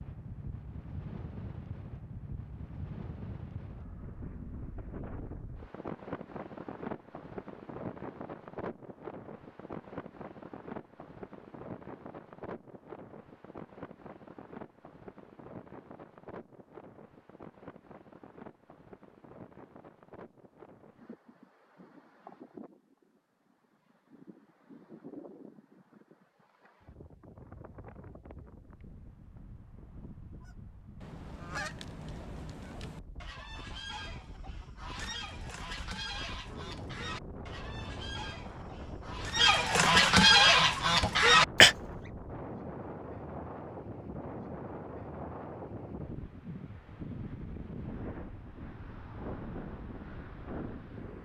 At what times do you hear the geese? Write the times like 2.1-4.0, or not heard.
30.4-41.8.